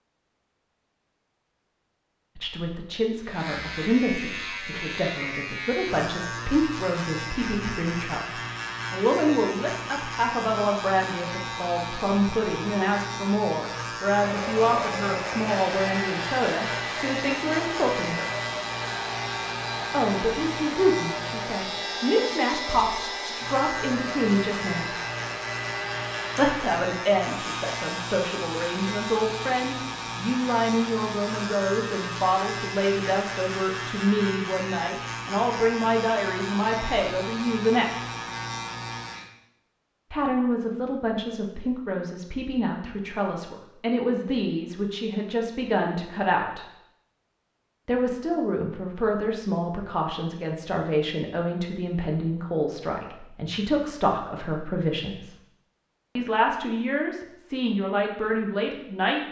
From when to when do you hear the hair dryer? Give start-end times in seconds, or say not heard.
14.2-34.0.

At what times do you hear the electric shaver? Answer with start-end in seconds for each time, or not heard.
3.2-39.3.